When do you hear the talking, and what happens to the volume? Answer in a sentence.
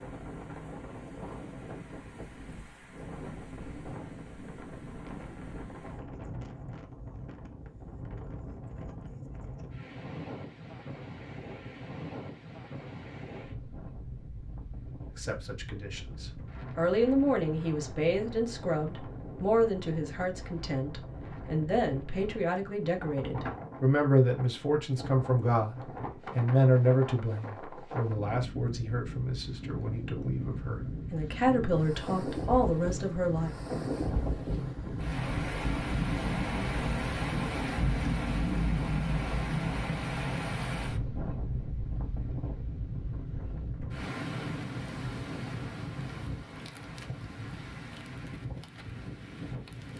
You can hear the talking from 15.2 to 33.5 s, at a steady volume.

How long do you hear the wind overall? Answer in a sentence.
The wind can be heard for 50 seconds in total.